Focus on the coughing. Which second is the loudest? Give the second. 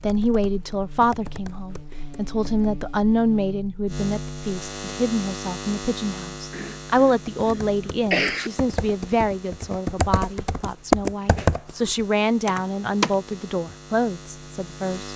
8 s.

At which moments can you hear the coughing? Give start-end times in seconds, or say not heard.
6.5-8.5.